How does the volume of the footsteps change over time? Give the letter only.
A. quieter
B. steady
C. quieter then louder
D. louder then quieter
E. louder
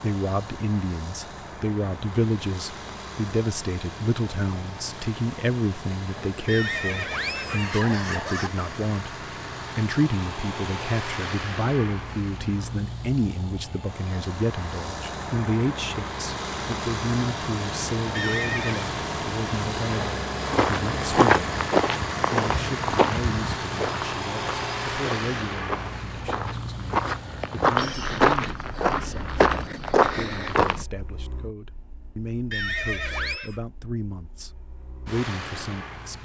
C.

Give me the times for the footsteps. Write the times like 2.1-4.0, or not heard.
20.4-30.9.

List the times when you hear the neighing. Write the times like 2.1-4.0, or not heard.
6.5-8.5, 18.1-18.9, 32.5-33.6.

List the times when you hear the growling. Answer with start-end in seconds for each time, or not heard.
not heard.